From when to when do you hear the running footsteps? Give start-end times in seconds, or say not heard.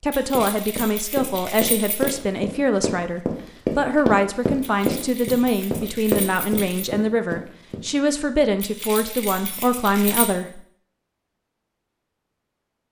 0.3-7.9.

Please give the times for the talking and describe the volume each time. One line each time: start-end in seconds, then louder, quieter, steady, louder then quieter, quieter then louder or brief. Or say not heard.
0.0-10.6 steady.